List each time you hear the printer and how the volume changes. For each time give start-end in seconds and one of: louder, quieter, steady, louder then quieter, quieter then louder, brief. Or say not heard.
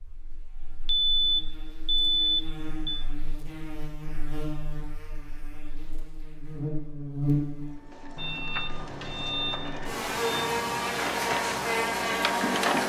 7.5-12.8 louder.